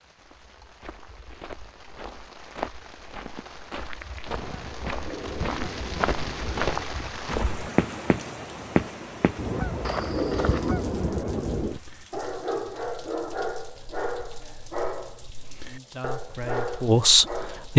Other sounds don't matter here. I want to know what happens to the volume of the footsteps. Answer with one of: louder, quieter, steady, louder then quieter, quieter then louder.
louder.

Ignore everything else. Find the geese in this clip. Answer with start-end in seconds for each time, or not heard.
4.3-7.0, 9.3-11.8.